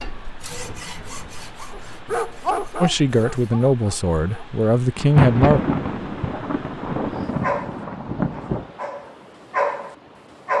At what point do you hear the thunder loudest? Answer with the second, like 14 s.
5 s.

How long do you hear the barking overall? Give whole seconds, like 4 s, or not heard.
6 s.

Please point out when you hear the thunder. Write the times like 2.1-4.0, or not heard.
5.0-8.7.